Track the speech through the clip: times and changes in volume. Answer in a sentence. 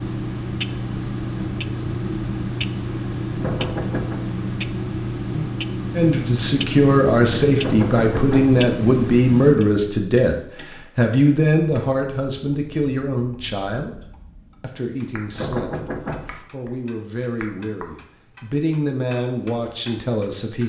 You can hear the speech from 6.0 to 10.3 s, at a steady volume; and from 10.9 to 20.6 s, getting quieter then louder.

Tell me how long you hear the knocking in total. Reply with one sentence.
You can hear the knocking for 3 seconds altogether.